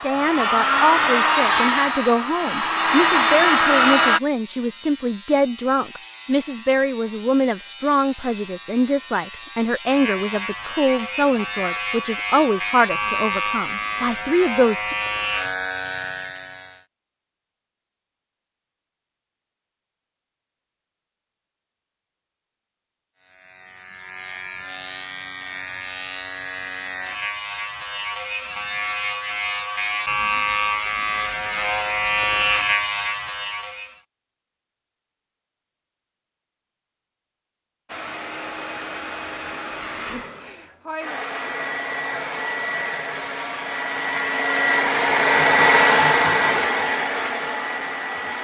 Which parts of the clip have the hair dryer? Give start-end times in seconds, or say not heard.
0.0-4.2, 37.9-48.3.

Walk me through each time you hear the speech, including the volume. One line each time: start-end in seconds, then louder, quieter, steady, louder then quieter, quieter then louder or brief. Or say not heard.
0.0-14.9 steady.